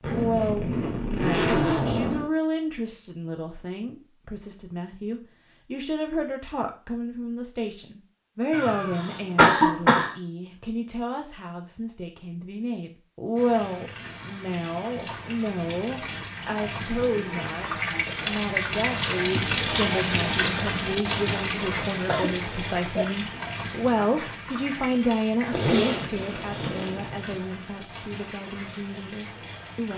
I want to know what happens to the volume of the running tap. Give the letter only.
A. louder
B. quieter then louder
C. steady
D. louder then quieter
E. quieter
D.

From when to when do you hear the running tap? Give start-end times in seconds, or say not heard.
13.3-29.9.